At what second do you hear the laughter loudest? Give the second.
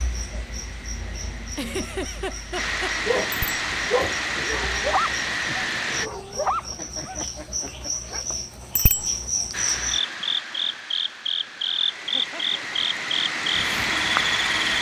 2 s.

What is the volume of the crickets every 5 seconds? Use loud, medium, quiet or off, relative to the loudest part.
quiet, medium, loud.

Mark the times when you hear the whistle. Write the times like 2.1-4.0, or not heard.
not heard.